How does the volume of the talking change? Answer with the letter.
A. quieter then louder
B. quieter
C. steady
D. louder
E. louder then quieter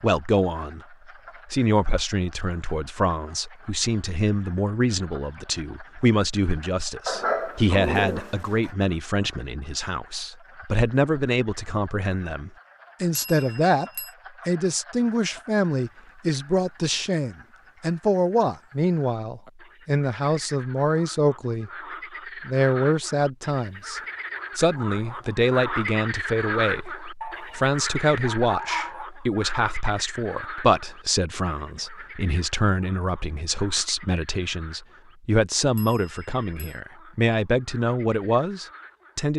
C.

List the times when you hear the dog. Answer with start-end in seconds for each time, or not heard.
7.0-8.7, 27.2-29.1.